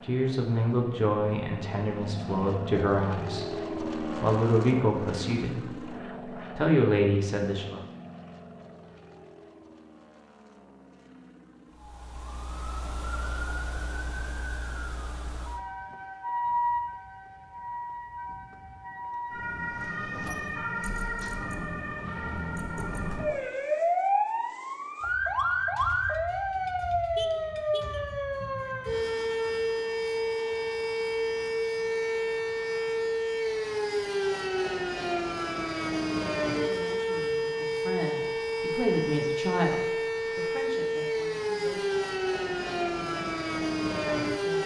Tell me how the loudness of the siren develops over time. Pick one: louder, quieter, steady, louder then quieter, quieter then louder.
louder.